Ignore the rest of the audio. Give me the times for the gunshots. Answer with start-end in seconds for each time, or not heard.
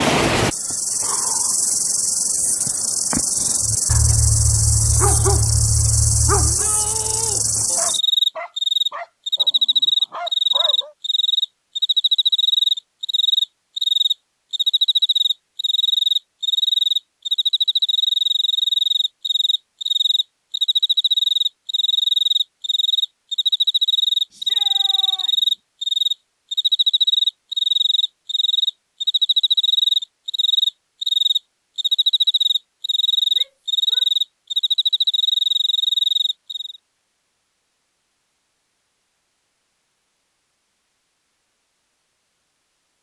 not heard.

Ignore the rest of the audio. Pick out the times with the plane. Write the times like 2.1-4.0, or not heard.
not heard.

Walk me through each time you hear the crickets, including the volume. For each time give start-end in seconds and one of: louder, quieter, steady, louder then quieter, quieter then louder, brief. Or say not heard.
0.0-36.8 louder.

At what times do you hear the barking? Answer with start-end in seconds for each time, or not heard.
3.6-10.9.